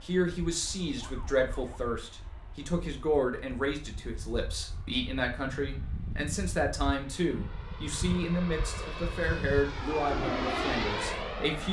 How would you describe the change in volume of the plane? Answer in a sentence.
The volume of the plane goes up.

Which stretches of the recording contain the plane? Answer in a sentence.
You can hear the plane from 0.0 to 11.6 s.